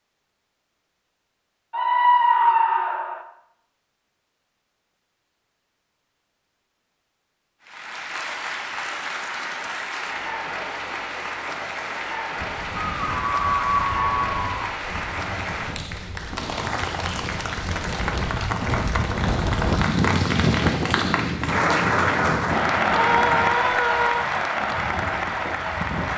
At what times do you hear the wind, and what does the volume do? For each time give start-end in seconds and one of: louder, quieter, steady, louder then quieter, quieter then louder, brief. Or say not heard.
12.3-26.1 louder then quieter.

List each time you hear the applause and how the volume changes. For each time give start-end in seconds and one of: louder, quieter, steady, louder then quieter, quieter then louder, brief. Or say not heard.
7.7-26.1 louder.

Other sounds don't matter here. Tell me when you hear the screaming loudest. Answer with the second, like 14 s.
2 s.